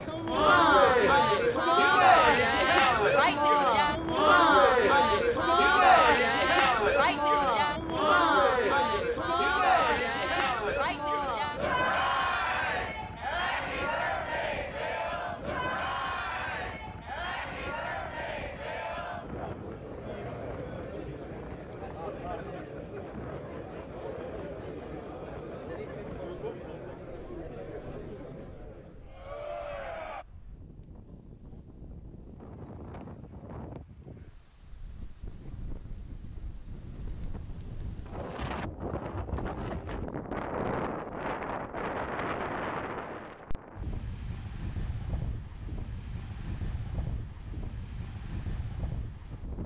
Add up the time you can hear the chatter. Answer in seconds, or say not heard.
30 s.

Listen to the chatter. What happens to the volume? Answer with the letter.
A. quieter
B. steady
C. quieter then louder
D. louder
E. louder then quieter
A.